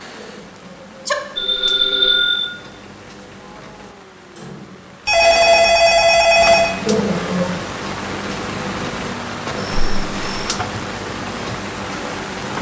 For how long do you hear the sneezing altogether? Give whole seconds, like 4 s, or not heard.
2 s.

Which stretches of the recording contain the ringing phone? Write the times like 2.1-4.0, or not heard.
1.4-2.5, 5.0-6.8, 9.4-10.6.